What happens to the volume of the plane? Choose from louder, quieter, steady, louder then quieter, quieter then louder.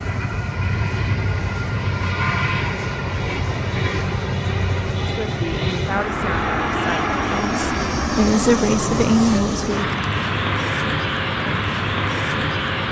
steady.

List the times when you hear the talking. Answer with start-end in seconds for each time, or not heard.
5.2-9.9.